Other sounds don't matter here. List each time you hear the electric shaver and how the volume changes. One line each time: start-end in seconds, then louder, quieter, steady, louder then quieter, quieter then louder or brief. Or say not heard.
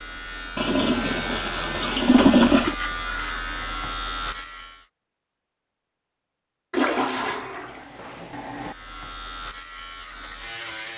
0.0-4.9 steady
8.4-10.9 brief.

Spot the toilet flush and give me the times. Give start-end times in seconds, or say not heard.
0.6-2.8, 6.7-8.8.